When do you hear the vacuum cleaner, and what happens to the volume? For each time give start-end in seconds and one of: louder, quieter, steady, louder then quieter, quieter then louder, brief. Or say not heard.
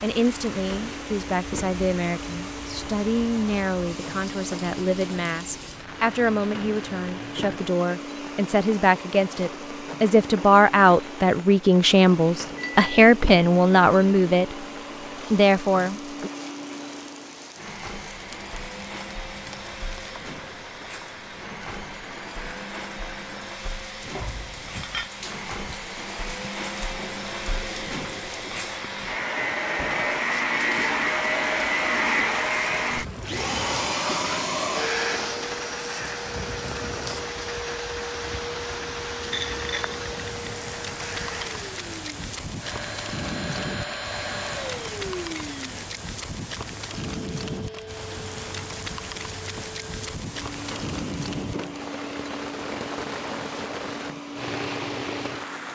0.0-55.7 louder then quieter.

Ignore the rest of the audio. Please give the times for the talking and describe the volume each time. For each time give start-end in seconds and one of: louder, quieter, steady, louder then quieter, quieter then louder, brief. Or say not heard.
0.0-14.7 louder
15.3-16.3 brief.